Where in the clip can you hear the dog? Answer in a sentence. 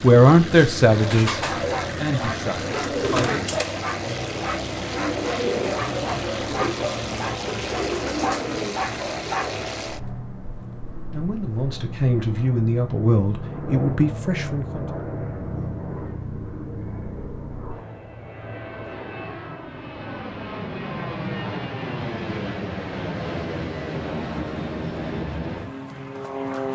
You can hear the dog from 1.3 to 9.8 s.